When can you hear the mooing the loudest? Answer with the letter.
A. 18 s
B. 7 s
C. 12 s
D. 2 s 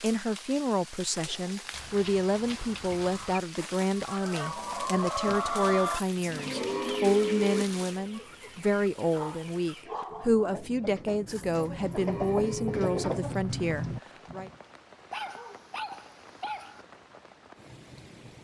B.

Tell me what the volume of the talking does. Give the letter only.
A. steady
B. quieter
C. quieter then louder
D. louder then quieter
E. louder
A.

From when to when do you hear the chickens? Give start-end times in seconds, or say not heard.
4.0-14.6.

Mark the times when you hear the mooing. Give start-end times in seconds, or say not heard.
5.8-7.7, 11.2-13.1.